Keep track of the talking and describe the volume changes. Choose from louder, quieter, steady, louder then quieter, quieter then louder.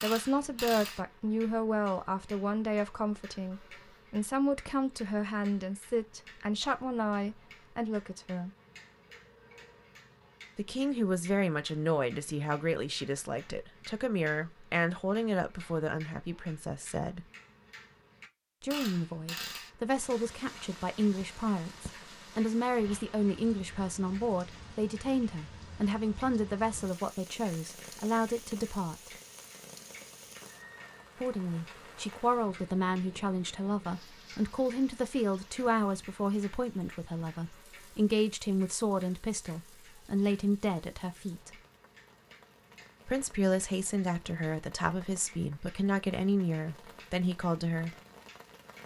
steady.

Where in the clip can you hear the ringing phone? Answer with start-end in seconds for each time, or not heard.
9.1-10.0.